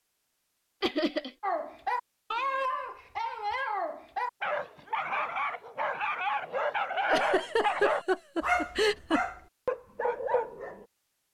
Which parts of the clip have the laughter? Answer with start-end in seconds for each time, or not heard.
0.8-1.3, 7.0-9.2.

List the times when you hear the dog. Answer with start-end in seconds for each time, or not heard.
1.4-10.8.